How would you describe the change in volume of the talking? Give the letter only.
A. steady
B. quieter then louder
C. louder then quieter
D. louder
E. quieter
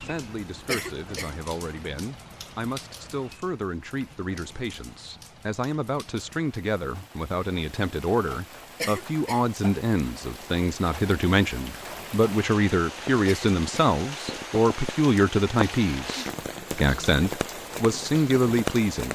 D.